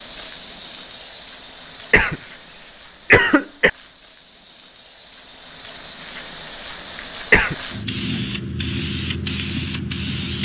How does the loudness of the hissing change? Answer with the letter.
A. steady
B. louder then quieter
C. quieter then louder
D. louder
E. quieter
C.